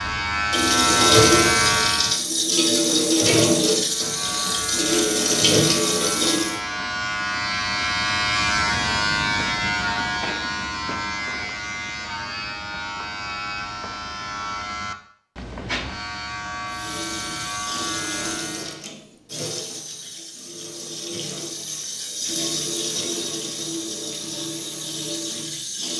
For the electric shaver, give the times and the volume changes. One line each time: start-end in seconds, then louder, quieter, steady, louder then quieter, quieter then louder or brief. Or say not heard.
0.0-2.2 brief
3.8-18.9 louder then quieter.